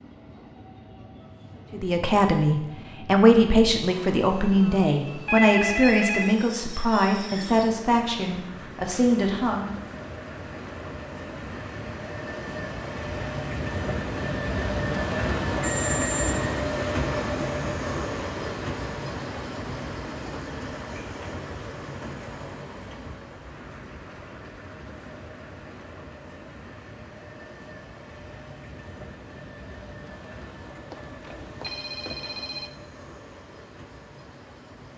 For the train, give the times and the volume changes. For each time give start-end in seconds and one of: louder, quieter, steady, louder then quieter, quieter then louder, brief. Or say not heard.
0.0-34.9 louder then quieter.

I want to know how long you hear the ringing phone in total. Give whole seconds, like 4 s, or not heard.
4 s.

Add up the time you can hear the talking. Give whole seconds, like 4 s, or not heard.
8 s.